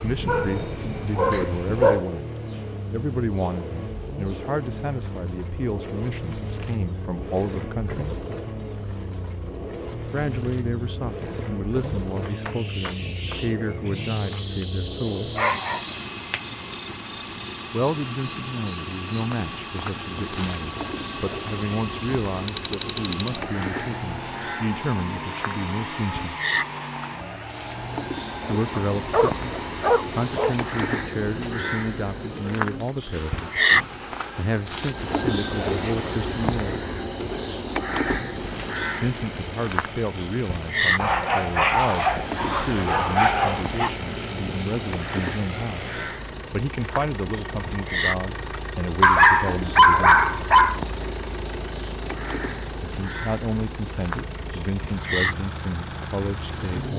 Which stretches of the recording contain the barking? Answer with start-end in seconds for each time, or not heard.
0.2-2.0, 15.3-16.4, 28.8-30.6, 41.0-43.9, 49.0-50.8.